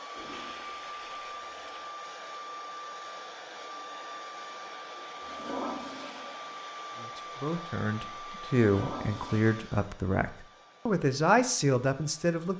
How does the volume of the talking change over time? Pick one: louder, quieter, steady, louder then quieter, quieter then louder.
louder.